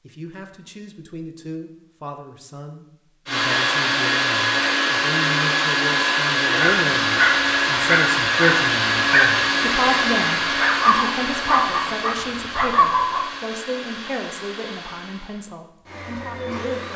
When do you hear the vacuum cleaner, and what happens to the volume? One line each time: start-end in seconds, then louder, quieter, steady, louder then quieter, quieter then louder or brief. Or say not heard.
3.2-16.9 quieter.